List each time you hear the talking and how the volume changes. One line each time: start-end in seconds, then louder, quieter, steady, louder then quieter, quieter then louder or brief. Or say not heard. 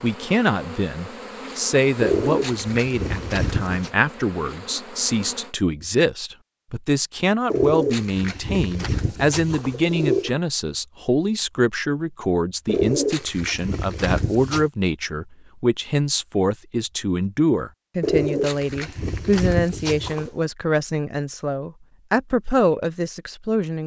0.0-23.8 steady.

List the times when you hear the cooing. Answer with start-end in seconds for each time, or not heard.
2.0-3.9, 7.5-10.3, 12.7-14.7, 18.0-20.4.